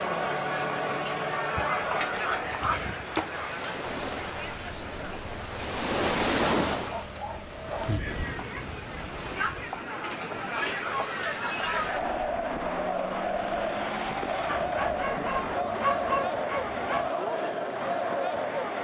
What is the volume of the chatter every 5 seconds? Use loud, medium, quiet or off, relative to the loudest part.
loud, medium, loud, loud.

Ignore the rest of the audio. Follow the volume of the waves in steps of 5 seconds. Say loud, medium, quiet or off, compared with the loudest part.
medium, loud, quiet, quiet.